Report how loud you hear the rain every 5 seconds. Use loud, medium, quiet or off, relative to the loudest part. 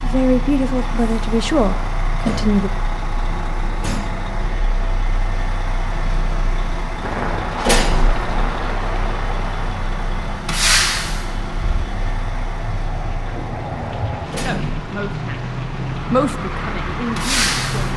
off, loud, loud, loud.